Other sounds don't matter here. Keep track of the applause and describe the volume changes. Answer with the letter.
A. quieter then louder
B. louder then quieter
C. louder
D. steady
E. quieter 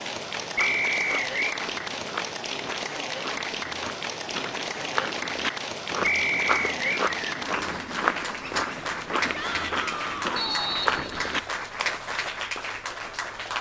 D.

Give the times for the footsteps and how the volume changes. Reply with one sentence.
The footsteps can be heard from 0.4 to 12.3 s, getting louder.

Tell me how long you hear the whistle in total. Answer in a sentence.
The whistle can be heard for 3 seconds in total.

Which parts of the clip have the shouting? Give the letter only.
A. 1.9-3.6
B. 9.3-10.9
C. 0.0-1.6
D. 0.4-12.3
B.